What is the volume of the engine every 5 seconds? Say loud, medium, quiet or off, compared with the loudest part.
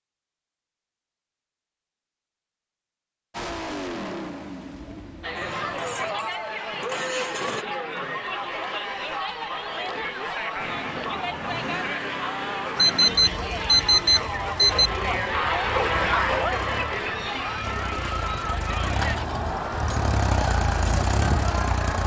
medium, medium, medium, medium, loud.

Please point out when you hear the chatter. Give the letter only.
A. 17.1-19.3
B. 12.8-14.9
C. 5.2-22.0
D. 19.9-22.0
C.